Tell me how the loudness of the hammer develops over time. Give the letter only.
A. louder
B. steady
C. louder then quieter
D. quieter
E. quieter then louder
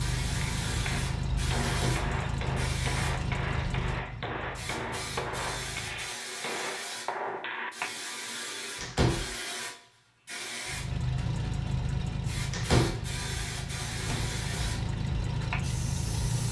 B.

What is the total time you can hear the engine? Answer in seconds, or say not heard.
12 s.